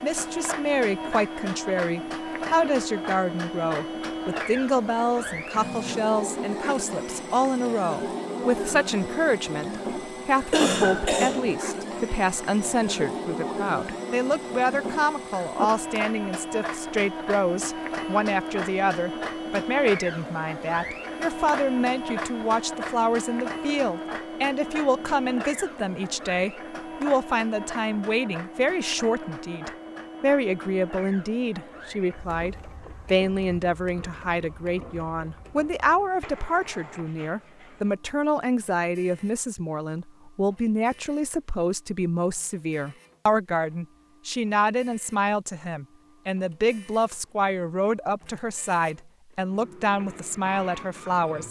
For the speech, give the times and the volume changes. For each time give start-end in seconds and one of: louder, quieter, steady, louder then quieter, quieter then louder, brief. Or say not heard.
0.0-51.4 steady.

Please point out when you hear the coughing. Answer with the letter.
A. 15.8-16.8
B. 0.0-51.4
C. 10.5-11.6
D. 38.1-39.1
C.